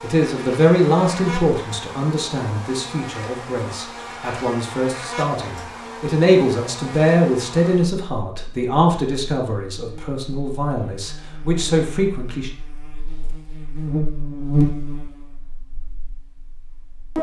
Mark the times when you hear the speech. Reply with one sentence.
The speech can be heard from 0.0 to 12.5 s.